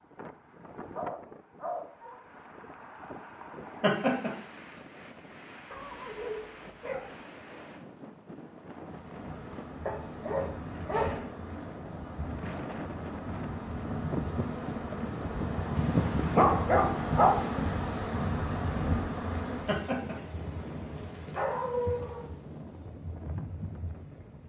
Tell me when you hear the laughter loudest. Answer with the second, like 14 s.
4 s.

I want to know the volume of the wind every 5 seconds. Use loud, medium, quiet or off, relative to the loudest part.
medium, medium, loud, loud, medium.